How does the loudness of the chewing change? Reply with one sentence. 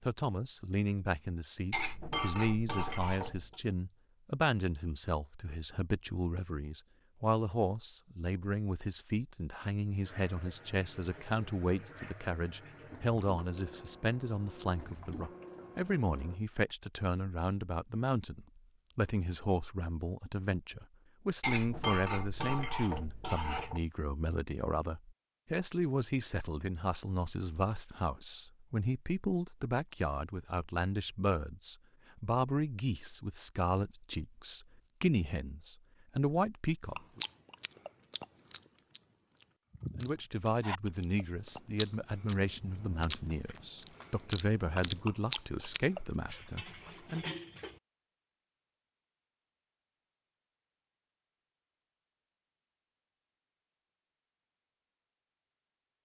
The volume of the chewing goes up.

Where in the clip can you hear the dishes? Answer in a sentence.
You can hear the dishes from 1.7 to 3.5 s, from 21.4 to 23.8 s and from 46.2 to 47.8 s.